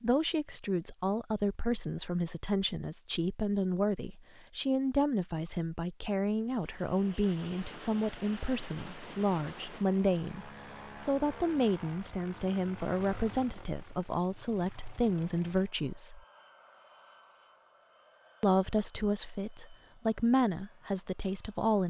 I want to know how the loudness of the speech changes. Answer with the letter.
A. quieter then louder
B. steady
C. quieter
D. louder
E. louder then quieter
B.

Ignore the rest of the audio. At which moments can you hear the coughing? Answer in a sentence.
You can't hear the coughing here.